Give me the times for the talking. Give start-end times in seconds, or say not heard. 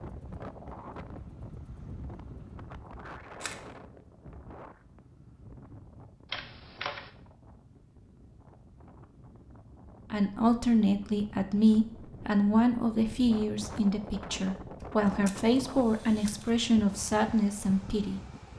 10.1-18.2.